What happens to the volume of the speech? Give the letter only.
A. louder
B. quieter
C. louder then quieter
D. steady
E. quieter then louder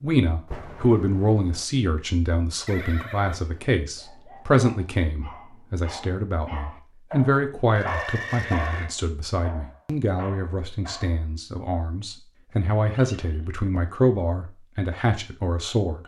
E.